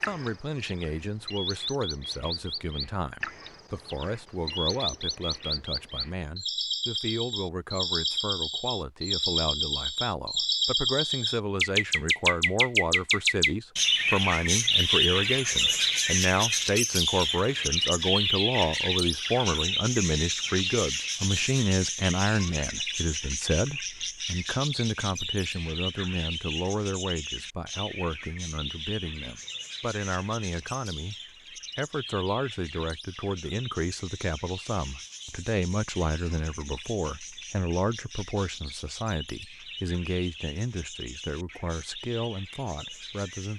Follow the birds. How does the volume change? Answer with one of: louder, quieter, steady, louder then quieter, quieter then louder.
louder then quieter.